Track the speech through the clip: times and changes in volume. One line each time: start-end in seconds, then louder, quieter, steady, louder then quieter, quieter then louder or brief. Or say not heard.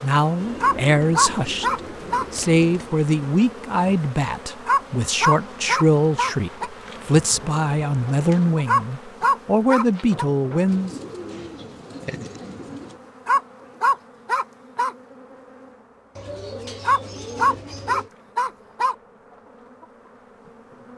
0.0-10.9 steady.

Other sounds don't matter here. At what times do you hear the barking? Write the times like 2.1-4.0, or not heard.
0.6-2.2, 4.7-6.7, 8.7-10.2, 13.2-14.9, 16.9-18.9.